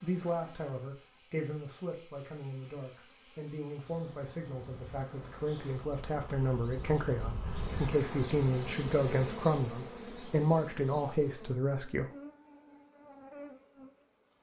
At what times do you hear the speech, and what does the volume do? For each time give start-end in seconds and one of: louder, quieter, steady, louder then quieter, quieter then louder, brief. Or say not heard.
0.0-12.1 louder.